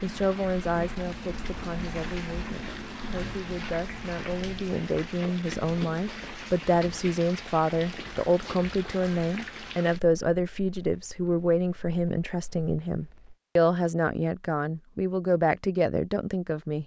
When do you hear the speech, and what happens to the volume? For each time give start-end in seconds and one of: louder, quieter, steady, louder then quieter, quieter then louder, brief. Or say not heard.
0.0-16.8 louder.